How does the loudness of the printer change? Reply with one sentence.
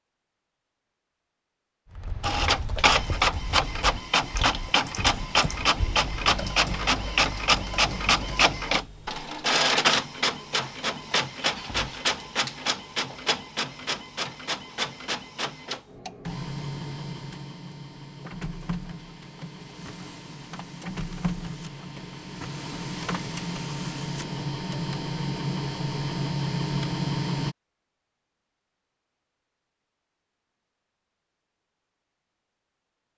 The volume of the printer goes down, then up.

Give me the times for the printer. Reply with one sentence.
You can hear the printer from 2.2 to 27.6 s.